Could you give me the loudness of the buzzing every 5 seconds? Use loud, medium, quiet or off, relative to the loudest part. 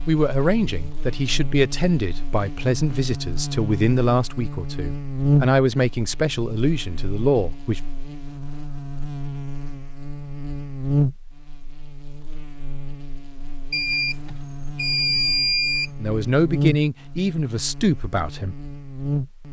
medium, loud, loud, loud.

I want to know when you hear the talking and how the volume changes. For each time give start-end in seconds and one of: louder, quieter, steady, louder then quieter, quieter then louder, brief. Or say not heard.
0.1-7.8 steady
16.0-18.6 brief.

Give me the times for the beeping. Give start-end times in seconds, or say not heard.
13.7-15.9.